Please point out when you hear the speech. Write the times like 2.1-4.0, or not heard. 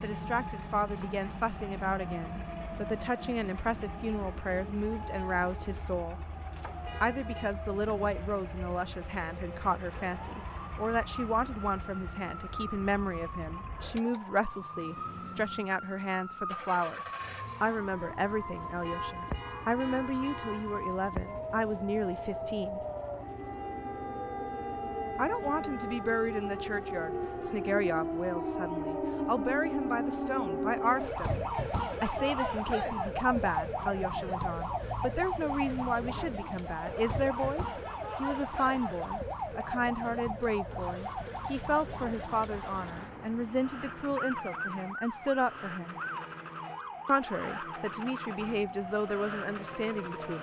0.0-6.2, 7.0-17.0, 17.6-22.8, 25.1-46.0, 47.0-50.3.